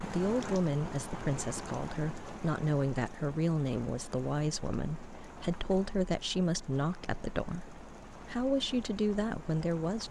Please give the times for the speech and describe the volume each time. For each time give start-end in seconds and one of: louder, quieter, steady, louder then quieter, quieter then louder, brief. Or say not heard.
0.0-10.0 steady.